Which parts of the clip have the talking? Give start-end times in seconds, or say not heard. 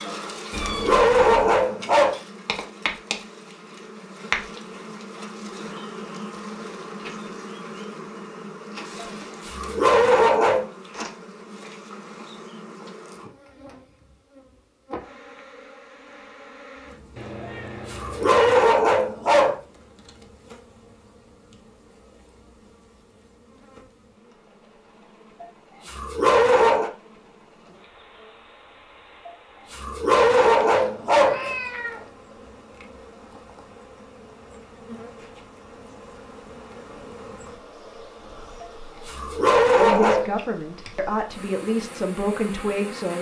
39.8-43.1.